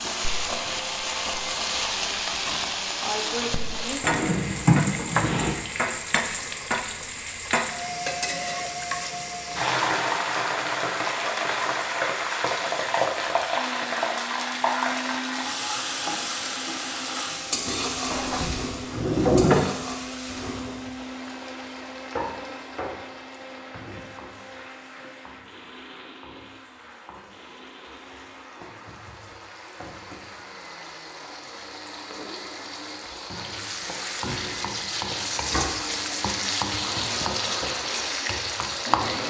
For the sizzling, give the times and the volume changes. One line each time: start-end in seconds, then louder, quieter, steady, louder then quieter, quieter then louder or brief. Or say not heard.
0.0-39.2 quieter then louder.